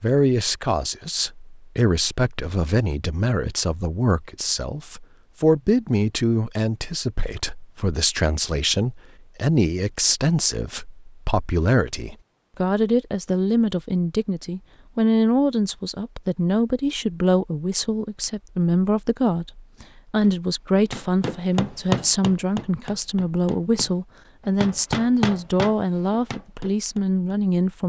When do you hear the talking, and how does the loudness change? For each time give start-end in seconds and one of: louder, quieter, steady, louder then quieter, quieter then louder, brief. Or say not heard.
0.0-27.8 steady.